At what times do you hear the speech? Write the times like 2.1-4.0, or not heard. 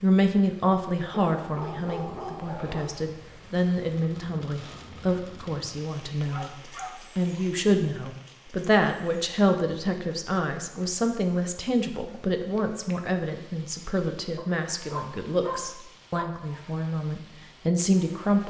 0.0-18.4.